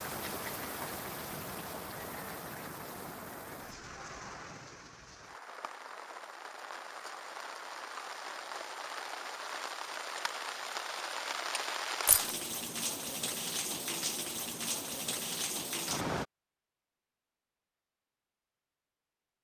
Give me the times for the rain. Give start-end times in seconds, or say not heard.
0.0-16.2.